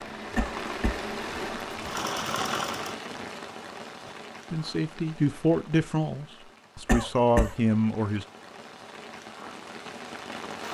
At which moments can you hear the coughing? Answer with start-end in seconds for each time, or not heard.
0.3-1.0, 6.8-7.5.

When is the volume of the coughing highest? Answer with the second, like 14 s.
7 s.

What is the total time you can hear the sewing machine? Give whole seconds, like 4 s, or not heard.
4 s.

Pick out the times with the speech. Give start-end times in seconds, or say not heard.
4.5-8.2.